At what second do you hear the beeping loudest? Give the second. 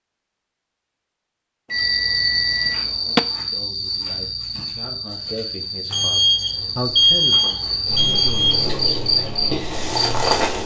7 s.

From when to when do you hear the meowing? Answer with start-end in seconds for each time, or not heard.
not heard.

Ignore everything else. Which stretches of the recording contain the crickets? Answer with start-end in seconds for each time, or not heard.
1.7-10.6.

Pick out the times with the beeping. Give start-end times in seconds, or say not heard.
1.7-3.2, 5.9-8.6.